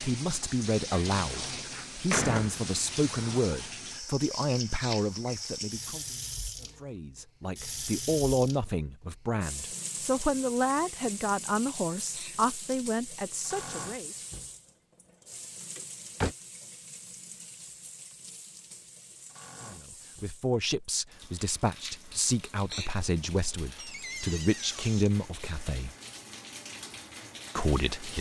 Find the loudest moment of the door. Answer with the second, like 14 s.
2 s.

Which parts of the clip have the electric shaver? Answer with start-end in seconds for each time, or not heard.
not heard.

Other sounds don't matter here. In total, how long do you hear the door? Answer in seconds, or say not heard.
4 s.